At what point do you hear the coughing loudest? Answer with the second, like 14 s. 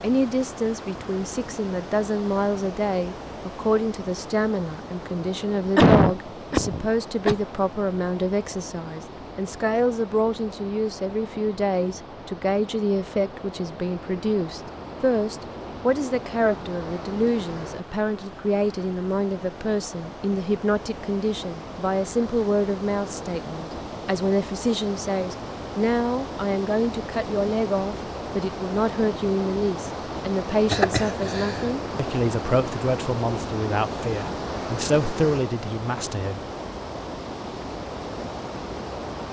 6 s.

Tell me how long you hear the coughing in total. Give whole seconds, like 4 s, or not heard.
3 s.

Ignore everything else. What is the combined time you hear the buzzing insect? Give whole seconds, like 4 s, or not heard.
not heard.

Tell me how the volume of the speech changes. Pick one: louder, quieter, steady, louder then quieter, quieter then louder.
steady.